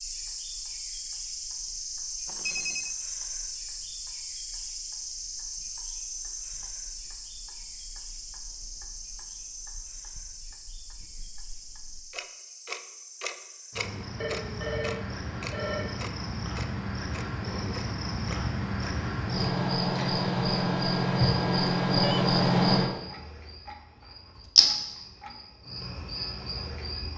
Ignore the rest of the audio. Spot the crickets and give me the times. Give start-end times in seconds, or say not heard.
0.0-27.1.